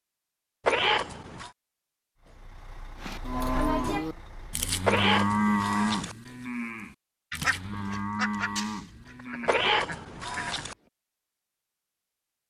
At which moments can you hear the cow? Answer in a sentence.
You can hear the cow from 3.0 to 9.7 s.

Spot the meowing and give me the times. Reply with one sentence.
The meowing can be heard from 0.7 to 1.5 s, from 4.8 to 6.2 s and from 9.4 to 10.8 s.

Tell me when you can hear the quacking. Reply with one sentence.
You can hear the quacking from 7.3 to 10.9 s.